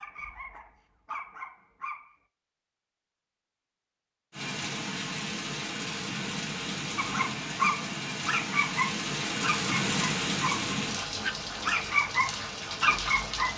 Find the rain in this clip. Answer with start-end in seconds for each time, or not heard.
4.3-13.5.